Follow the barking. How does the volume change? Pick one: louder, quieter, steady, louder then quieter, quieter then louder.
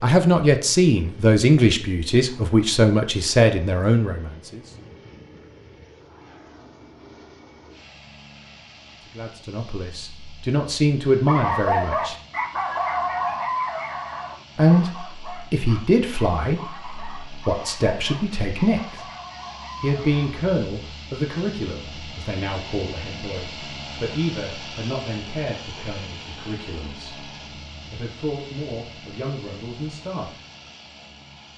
quieter.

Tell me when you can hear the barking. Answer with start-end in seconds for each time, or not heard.
11.2-20.4.